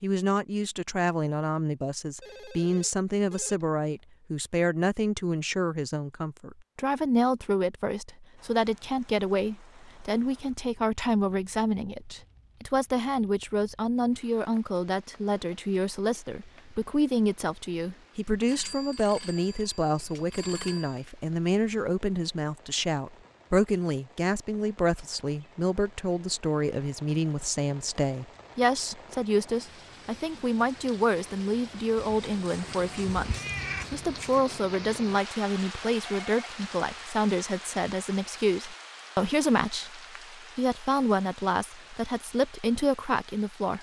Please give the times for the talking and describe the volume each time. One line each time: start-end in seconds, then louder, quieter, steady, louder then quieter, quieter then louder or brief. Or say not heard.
0.0-43.7 steady.